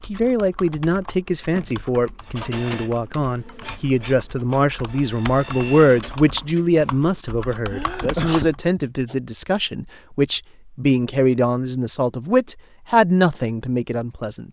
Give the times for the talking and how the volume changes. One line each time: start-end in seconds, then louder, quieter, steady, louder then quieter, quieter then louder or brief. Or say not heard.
0.0-14.4 steady.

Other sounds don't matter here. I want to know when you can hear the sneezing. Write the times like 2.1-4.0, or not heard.
7.7-9.2.